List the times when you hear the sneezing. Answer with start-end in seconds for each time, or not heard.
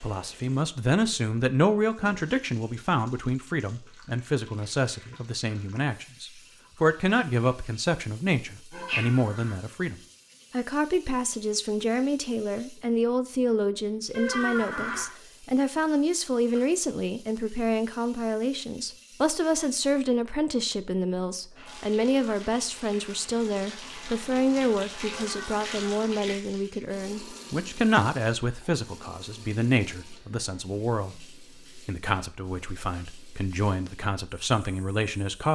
8.7-9.1.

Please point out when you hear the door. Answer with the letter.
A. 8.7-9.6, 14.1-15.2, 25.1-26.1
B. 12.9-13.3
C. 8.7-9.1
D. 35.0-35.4
A.